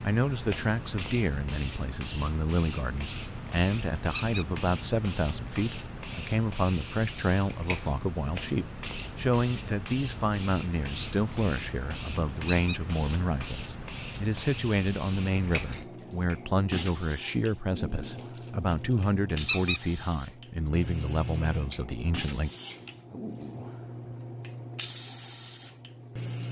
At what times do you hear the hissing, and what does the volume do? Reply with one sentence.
You can hear the hissing from 0.0 to 26.4 s, at a steady volume.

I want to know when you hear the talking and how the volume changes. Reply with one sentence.
You can hear the talking from 0.0 to 22.5 s, at a steady volume.